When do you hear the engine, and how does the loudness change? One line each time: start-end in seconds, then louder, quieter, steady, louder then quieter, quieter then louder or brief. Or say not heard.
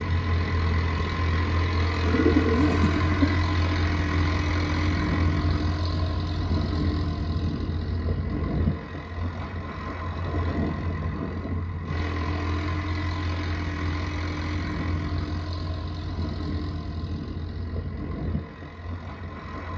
0.0-19.7 quieter.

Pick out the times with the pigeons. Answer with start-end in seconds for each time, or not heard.
2.0-3.4.